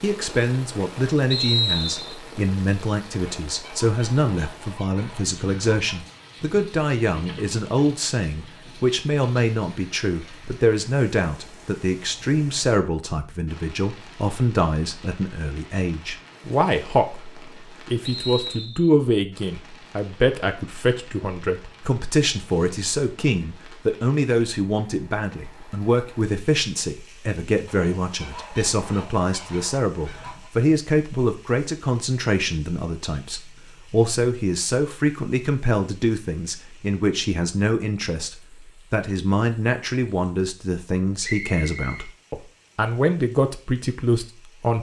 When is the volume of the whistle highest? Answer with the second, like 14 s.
2 s.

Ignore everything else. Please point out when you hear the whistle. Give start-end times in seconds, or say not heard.
1.3-2.1, 18.0-18.9, 41.2-42.0.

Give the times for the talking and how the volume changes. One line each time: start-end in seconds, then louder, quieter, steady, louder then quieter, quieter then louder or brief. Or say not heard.
0.0-44.7 steady.